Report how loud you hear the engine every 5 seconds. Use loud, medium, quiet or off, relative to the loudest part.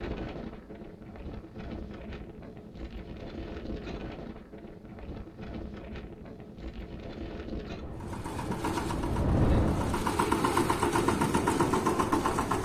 off, medium, loud.